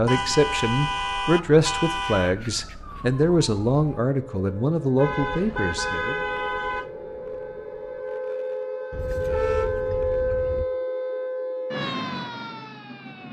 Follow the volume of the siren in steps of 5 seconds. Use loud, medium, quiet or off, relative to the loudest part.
quiet, loud, loud.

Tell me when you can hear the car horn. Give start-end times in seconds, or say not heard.
0.1-2.4, 5.0-6.9, 8.9-10.7.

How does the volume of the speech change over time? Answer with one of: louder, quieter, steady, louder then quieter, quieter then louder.
steady.